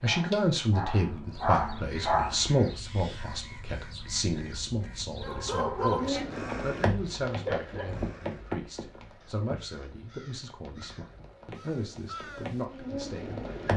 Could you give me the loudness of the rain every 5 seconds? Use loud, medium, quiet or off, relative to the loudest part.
off, loud, loud.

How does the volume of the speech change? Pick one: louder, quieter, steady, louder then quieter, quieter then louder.
quieter.